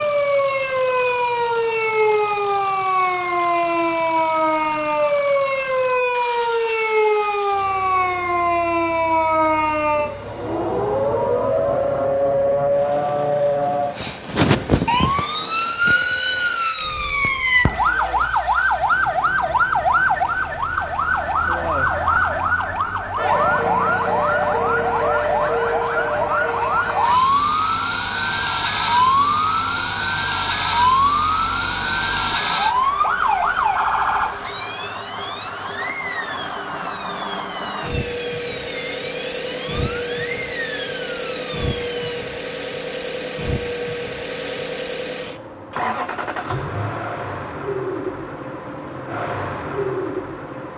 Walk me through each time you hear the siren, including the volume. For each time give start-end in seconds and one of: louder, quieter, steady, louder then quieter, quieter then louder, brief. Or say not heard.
0.0-42.2 quieter.